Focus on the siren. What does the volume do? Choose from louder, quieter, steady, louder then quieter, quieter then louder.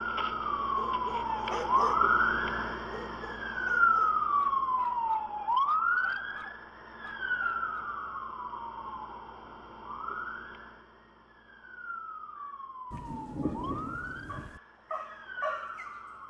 quieter.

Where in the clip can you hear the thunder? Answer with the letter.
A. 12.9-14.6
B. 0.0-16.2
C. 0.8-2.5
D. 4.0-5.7
A.